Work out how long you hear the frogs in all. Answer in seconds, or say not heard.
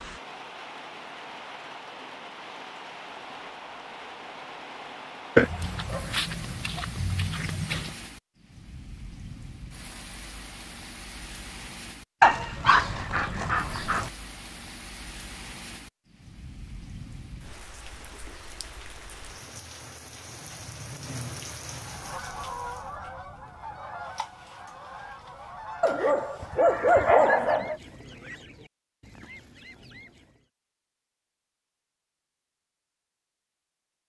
not heard.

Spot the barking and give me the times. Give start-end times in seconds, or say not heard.
5.3-7.9, 12.2-14.1, 25.8-27.8.